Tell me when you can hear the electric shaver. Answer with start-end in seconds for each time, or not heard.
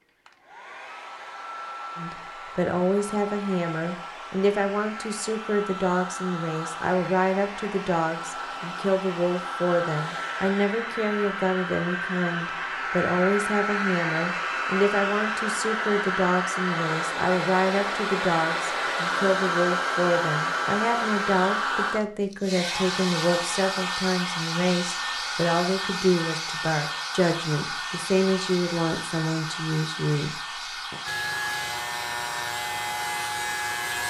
31.1-34.0.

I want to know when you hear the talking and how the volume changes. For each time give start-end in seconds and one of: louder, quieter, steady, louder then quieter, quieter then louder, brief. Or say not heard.
1.9-31.0 steady.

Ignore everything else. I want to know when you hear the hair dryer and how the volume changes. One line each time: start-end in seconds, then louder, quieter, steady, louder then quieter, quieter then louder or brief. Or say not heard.
0.2-34.0 louder then quieter.